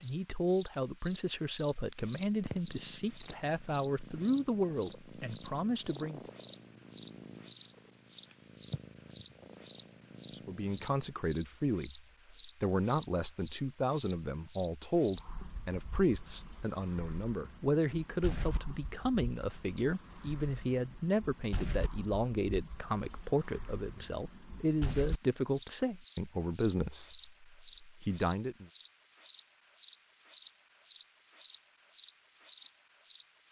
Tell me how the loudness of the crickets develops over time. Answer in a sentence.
The loudness of the crickets goes down, then up.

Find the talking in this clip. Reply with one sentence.
You can hear the talking from 0.0 to 6.2 s and from 10.3 to 28.6 s.